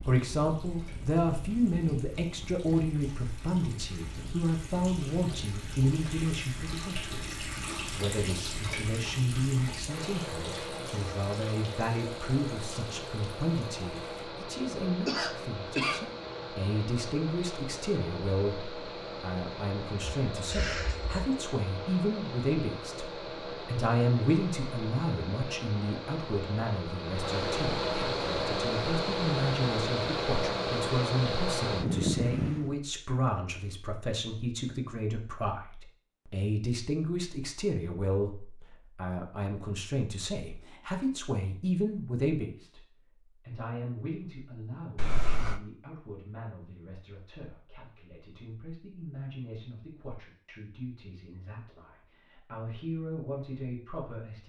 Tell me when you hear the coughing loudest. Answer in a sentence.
The volume of the coughing peaks at 16 seconds.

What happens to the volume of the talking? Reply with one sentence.
The loudness of the talking goes down.